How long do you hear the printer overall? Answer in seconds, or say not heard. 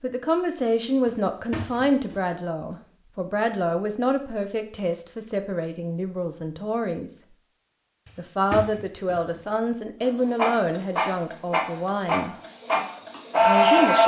4 s.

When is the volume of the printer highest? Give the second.
14 s.